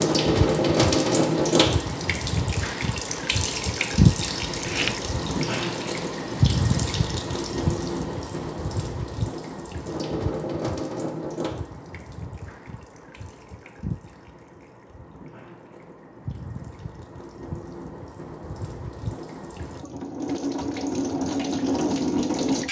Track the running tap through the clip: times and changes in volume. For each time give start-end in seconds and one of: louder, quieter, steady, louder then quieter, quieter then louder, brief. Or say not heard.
0.0-22.6 quieter then louder.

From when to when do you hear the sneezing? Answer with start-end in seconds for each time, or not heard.
4.5-5.0.